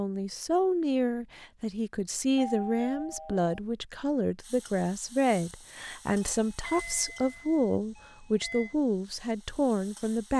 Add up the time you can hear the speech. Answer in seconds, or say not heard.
10 s.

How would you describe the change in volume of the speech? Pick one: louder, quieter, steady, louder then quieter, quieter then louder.
steady.